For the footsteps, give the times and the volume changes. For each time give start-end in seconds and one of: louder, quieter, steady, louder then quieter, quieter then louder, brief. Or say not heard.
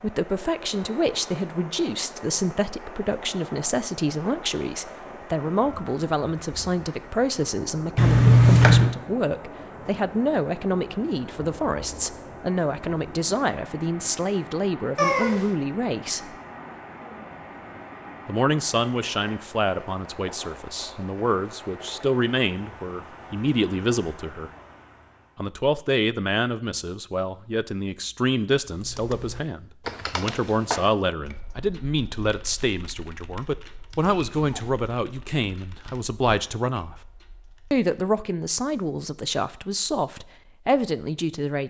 not heard.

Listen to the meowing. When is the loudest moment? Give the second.
8 s.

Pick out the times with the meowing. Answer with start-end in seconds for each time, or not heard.
8.0-8.9, 14.9-15.5, 34.1-34.7.